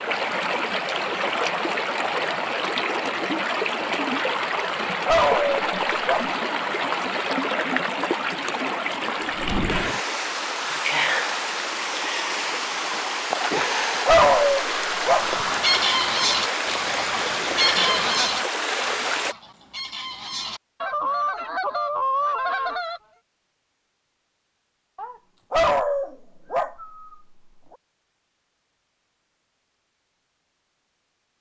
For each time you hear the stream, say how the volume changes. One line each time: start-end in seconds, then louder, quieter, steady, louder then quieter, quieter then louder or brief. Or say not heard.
0.0-19.4 steady.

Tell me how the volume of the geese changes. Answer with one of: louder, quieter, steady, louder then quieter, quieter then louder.
quieter then louder.